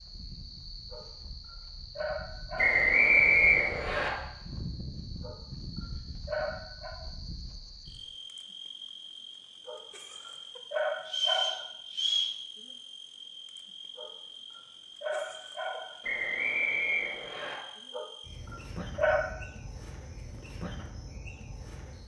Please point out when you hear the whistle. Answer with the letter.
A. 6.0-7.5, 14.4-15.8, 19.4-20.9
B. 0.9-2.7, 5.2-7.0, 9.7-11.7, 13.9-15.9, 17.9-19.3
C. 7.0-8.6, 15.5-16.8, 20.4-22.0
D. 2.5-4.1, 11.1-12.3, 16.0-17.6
D.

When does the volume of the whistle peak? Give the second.
3 s.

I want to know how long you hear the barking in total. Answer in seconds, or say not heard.
9 s.